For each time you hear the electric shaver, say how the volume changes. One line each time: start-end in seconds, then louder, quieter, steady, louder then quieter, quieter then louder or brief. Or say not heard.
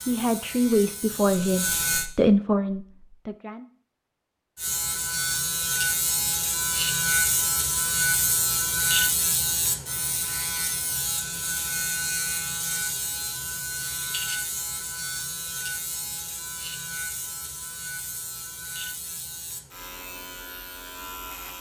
0.0-2.1 brief
4.5-21.5 quieter.